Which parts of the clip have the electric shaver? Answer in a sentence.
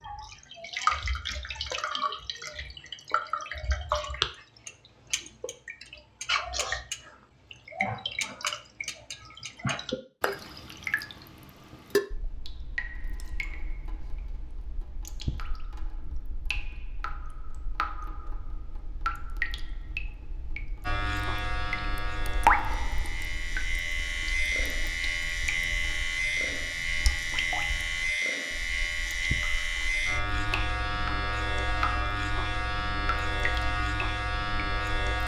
You can hear the electric shaver from 20.8 to 35.2 s.